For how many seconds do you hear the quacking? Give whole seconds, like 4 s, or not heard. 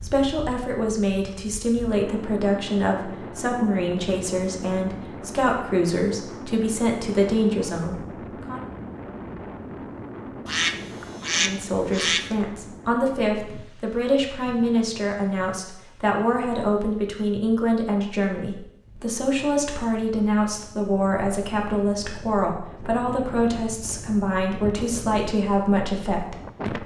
2 s.